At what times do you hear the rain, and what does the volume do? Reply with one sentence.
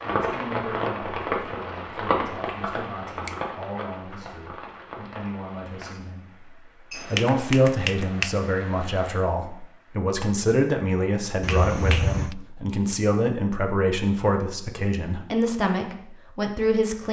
The rain can be heard from 0.0 to 9.9 s, getting quieter.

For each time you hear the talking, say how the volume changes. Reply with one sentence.
You can hear the talking from 0.0 to 17.0 s, getting louder.